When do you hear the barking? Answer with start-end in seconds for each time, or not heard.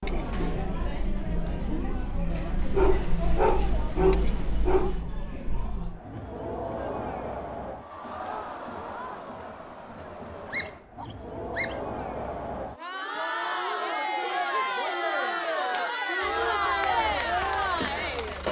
2.5-5.0, 10.4-12.0.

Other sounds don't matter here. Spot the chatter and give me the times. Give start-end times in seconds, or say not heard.
0.0-18.4.